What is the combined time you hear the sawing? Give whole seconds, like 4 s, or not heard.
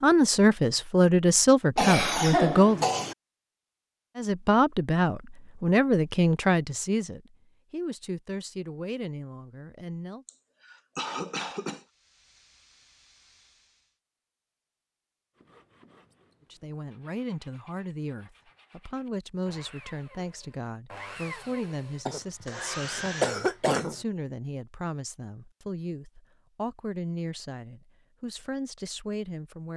8 s.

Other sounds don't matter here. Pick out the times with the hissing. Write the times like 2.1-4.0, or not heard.
11.8-14.0.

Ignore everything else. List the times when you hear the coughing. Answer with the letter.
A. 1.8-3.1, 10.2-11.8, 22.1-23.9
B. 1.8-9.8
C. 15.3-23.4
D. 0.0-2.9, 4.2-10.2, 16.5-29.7
A.